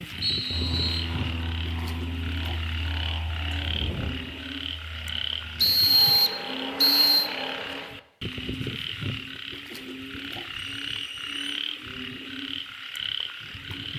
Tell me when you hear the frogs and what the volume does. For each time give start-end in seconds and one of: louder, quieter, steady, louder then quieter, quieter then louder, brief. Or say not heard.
0.0-13.9 steady.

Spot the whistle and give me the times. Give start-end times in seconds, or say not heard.
0.2-1.1, 5.5-7.3, 10.8-11.7.